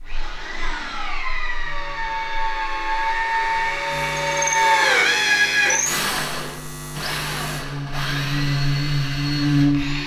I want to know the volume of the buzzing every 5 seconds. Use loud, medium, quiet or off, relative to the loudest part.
quiet, loud.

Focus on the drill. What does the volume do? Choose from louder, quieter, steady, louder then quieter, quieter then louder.
louder then quieter.